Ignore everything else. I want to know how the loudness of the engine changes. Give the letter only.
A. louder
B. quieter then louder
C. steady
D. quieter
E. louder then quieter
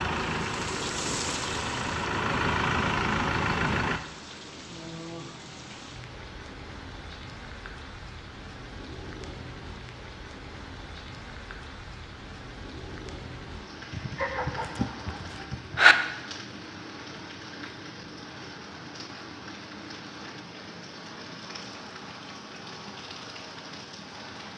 A.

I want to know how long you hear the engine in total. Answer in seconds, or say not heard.
4 s.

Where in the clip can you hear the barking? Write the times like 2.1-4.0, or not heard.
13.9-15.9.